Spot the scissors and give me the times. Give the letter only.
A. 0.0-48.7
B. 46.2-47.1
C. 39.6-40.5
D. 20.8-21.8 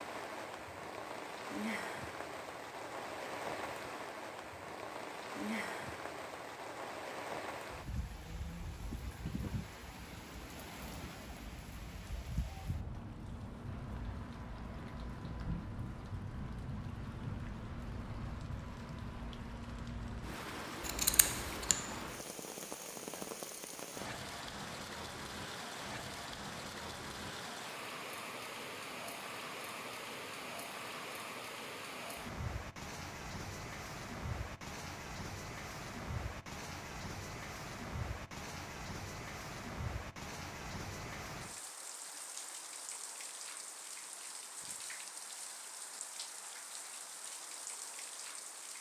D.